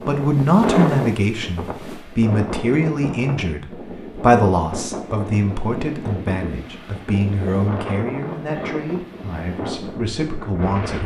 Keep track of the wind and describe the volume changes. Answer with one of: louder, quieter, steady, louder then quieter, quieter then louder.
quieter.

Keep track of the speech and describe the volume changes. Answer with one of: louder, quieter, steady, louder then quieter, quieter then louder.
quieter.